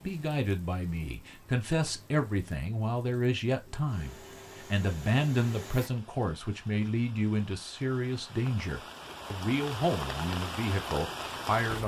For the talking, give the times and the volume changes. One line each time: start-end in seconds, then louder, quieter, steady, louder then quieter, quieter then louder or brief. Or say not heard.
0.1-11.8 steady.